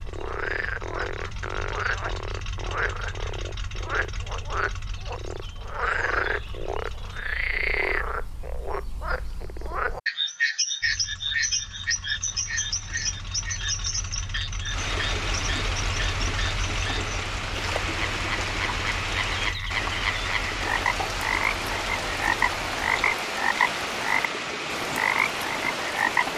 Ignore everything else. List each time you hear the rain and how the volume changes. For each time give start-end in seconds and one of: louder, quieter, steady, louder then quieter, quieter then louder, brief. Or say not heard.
12.2-26.3 louder.